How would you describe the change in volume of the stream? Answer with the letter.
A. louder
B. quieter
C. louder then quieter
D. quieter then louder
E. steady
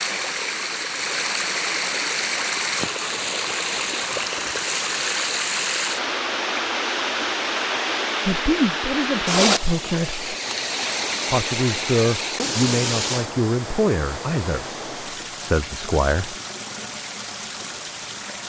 B.